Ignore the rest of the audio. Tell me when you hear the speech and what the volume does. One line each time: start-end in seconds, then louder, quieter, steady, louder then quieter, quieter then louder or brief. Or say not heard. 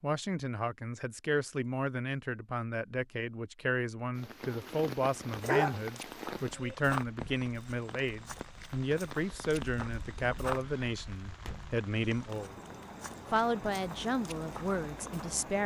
0.0-12.6 steady
13.3-15.6 brief.